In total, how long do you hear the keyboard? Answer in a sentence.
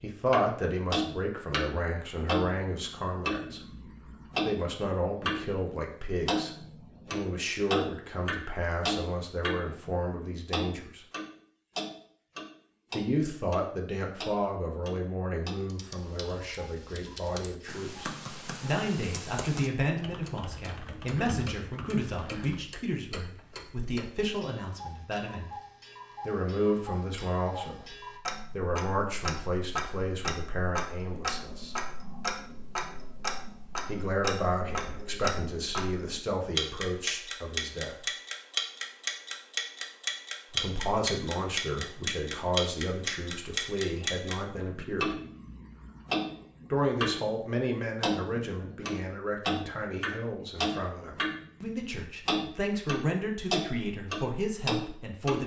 You can hear the keyboard for 7 seconds altogether.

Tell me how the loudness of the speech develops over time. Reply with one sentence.
The volume of the speech stays about the same.